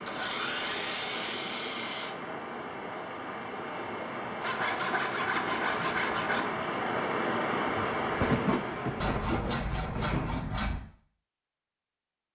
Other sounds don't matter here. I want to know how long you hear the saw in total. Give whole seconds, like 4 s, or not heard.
6 s.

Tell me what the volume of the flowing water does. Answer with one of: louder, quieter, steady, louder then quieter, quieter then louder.
louder.